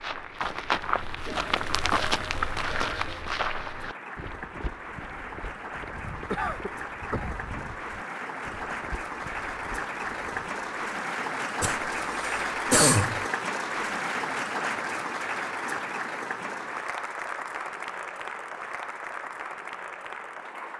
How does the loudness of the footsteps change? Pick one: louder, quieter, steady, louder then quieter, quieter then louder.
quieter.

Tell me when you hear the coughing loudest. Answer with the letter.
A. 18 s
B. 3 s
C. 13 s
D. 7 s
C.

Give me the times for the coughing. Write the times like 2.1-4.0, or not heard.
6.3-7.3, 11.6-13.2.